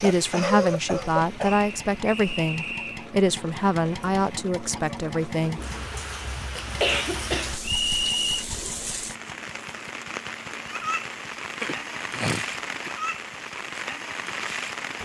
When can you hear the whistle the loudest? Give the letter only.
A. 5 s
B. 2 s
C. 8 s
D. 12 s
C.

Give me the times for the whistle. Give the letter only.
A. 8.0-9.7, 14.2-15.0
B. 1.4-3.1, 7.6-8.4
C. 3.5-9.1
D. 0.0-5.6
B.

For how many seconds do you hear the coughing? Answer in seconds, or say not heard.
5 s.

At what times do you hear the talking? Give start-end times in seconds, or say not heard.
0.0-5.6.